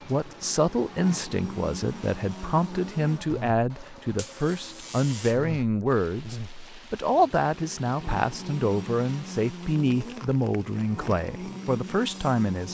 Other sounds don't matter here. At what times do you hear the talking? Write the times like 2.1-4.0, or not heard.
0.1-12.7.